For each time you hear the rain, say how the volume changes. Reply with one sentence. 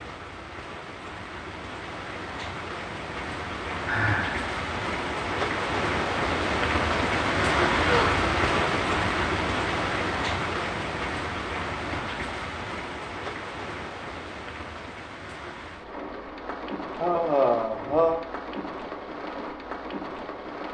The rain can be heard from 0.0 to 20.6 s, getting louder then quieter.